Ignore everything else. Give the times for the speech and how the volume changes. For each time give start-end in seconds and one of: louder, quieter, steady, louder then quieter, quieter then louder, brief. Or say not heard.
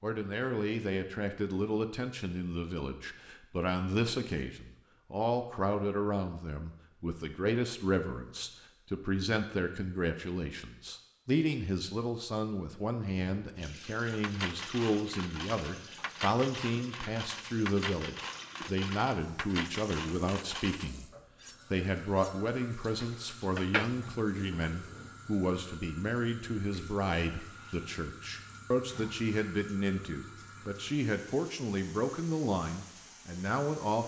0.0-21.1 steady
21.7-34.0 steady.